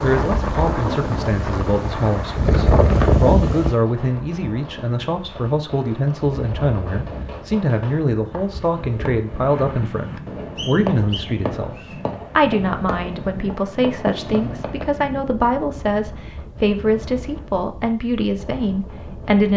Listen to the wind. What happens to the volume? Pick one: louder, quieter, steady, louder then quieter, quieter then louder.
quieter.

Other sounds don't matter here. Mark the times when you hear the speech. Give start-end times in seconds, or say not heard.
0.0-11.8, 12.3-19.5.